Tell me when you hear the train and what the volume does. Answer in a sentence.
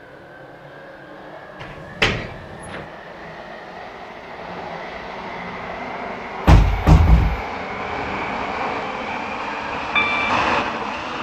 You can hear the train from 0.0 to 11.1 s, getting louder.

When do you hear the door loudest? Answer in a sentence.
The loudest moment of the door is at 7 seconds.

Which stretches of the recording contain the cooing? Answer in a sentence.
The cooing can't be heard in this clip.